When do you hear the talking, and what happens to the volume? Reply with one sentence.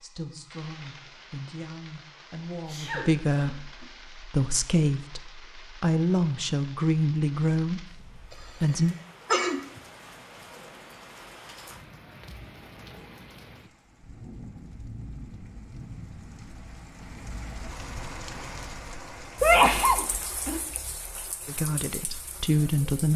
You can hear the talking from 0.0 to 8.9 s, getting louder; and briefly from 21.4 to 23.1 s.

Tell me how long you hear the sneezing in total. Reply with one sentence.
The sneezing can be heard for 4 seconds in total.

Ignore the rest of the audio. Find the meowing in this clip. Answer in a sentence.
You can't hear the meowing here.